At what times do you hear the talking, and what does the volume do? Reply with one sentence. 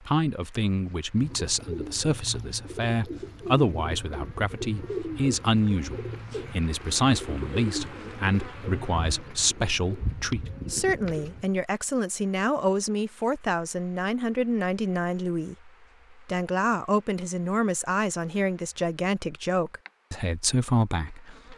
You can hear the talking from 0.1 to 21.5 s, at a steady volume.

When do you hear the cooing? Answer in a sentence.
The cooing can be heard from 1.1 to 11.5 s.